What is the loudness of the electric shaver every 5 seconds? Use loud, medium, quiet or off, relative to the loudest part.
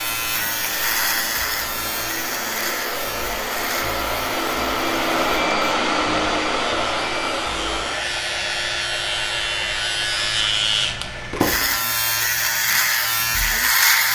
medium, medium, loud.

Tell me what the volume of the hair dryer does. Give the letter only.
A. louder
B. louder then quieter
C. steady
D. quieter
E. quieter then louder
B.